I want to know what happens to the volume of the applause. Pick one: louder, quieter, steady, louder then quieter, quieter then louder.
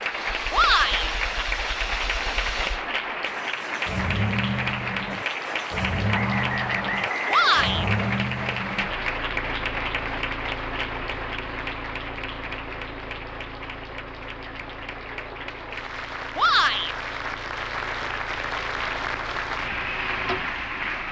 quieter then louder.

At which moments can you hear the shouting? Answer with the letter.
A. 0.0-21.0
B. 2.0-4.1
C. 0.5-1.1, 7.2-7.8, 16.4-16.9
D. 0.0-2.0
C.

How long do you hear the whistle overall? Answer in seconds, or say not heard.
2 s.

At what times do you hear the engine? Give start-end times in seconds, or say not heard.
0.0-21.0.